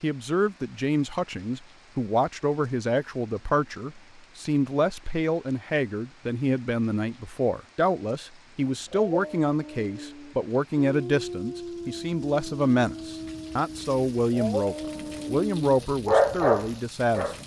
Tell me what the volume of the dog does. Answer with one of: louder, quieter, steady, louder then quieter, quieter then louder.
louder.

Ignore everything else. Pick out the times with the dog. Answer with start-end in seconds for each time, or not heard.
8.8-17.4.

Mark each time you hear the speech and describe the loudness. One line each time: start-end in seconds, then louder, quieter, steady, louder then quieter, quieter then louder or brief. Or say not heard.
0.0-17.4 steady.